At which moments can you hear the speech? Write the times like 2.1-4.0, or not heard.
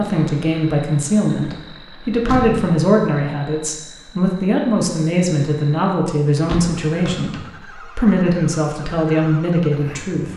0.0-10.3.